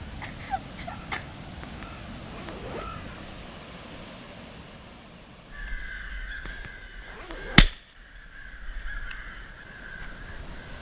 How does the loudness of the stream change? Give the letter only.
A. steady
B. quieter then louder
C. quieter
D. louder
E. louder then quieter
B.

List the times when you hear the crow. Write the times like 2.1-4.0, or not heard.
0.1-3.4, 5.5-10.7.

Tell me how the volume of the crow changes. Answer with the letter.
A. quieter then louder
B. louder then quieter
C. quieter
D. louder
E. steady
B.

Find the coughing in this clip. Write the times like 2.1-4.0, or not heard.
0.2-1.2.